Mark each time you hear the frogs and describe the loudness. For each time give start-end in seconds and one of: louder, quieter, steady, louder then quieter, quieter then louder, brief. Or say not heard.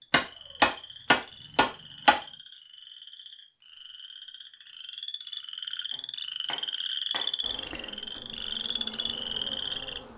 0.0-10.0 louder.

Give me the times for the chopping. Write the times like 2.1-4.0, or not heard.
0.1-2.1, 6.5-7.3.